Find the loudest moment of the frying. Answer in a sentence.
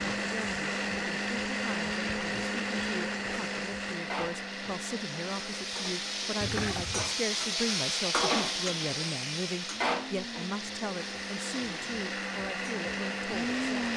The loudest moment of the frying is at 8 seconds.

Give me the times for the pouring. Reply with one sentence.
You can hear the pouring from 6.4 to 7.2 s.